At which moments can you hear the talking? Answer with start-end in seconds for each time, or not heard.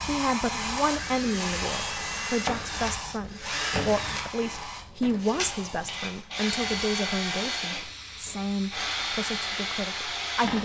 0.0-10.6.